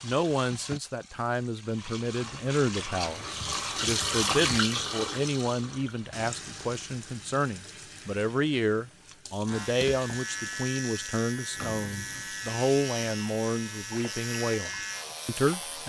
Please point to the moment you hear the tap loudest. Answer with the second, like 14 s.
4 s.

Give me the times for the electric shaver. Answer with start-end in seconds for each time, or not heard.
9.4-15.8.